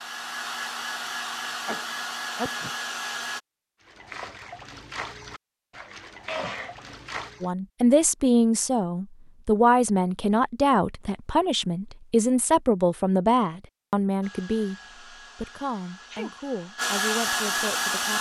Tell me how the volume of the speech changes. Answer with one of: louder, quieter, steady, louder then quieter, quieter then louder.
quieter.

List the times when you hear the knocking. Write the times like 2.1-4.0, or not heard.
not heard.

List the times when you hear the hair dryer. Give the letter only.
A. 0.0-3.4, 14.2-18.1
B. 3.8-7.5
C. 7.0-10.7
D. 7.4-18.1
A.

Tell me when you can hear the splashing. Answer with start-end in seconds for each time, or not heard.
3.8-7.5.